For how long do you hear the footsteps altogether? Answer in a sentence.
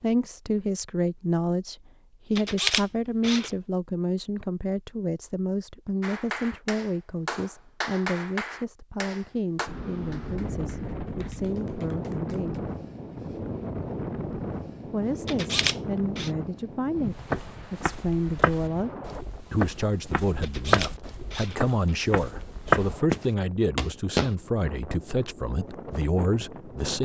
The footsteps can be heard for 7 seconds in total.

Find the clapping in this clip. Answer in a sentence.
The clapping can be heard from 6.0 to 12.6 s.